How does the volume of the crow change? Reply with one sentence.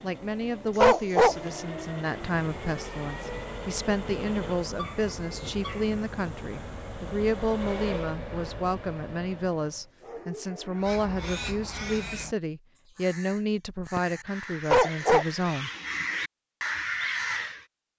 The loudness of the crow goes down, then up.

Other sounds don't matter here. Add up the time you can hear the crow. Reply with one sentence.
The crow can be heard for 7 seconds in total.